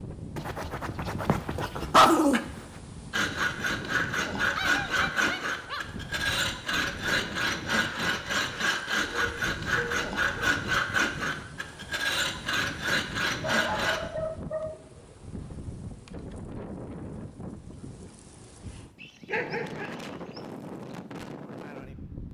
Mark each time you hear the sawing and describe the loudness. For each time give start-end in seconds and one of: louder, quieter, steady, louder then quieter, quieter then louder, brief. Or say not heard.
3.1-14.0 steady.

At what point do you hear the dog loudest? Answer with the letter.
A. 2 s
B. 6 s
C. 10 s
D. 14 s
A.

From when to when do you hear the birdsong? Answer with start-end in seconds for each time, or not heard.
not heard.